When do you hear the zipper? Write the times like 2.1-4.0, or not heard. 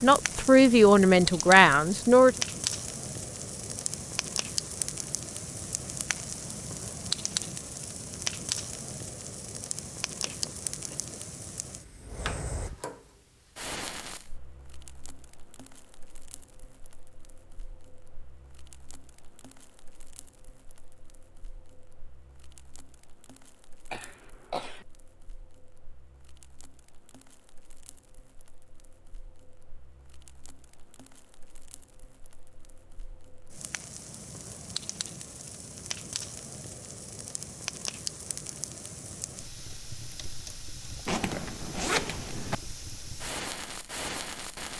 41.0-42.5.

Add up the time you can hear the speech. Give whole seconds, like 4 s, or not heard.
2 s.